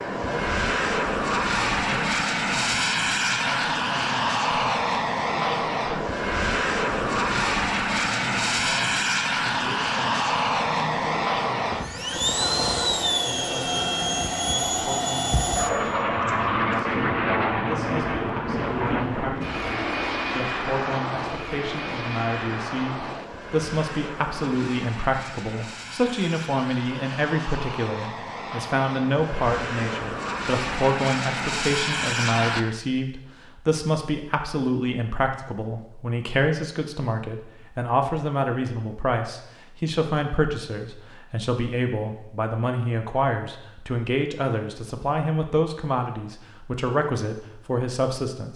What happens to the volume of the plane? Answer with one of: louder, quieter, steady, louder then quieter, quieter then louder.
quieter.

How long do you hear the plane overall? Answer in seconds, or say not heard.
33 s.